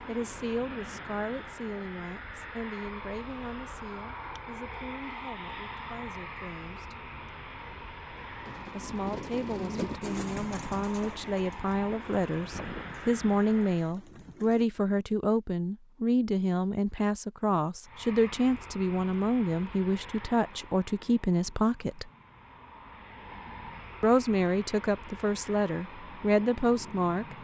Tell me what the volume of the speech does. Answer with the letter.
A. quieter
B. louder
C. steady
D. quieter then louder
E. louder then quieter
B.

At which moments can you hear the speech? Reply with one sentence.
The speech can be heard from 0.1 to 7.0 s, from 8.7 to 22.1 s and from 24.0 to 27.4 s.